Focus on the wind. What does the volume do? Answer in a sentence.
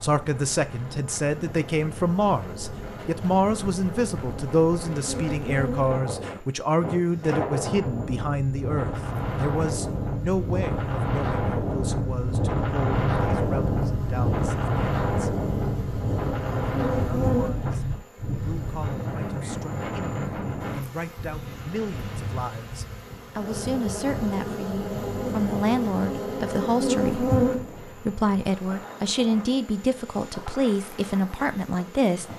The volume of the wind goes up, then down.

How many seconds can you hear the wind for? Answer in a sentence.
The wind can be heard for 32 seconds in total.